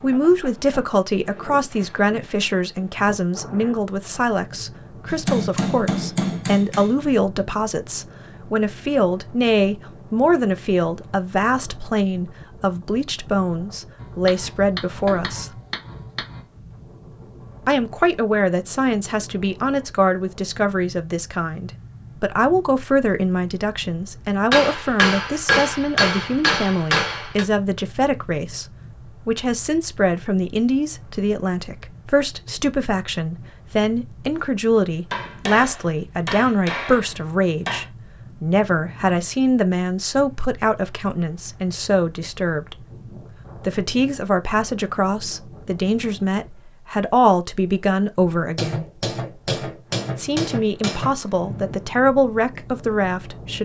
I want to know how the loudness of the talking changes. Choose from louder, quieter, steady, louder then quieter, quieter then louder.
steady.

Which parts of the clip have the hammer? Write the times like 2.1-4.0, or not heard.
5.1-6.9, 13.9-16.4, 24.5-27.4, 35.1-37.9, 48.4-51.1.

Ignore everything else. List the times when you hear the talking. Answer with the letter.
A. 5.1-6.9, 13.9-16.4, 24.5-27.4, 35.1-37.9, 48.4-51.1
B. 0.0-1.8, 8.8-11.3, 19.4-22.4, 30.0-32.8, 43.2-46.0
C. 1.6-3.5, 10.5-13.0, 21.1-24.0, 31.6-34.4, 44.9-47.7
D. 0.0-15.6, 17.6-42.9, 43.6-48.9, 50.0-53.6
D.